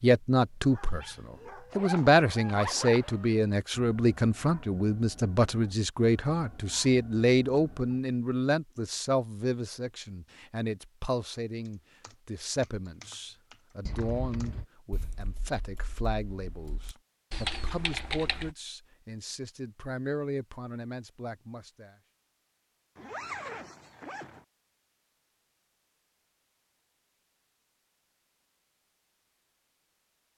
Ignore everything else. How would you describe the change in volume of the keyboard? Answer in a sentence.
The loudness of the keyboard goes down, then up.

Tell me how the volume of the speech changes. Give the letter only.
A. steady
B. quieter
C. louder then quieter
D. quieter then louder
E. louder
B.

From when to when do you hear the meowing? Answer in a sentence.
The meowing can't be heard in this clip.